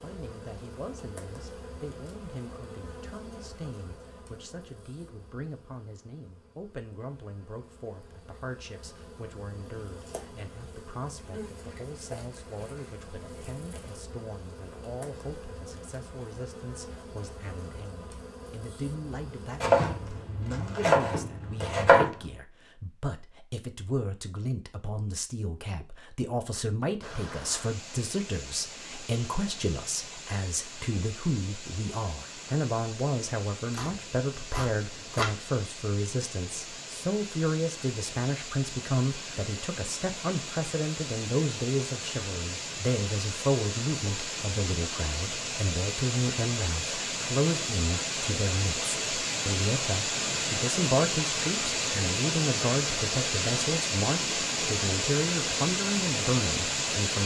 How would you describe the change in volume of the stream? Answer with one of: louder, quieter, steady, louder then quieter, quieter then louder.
louder.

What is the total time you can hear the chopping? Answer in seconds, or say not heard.
4 s.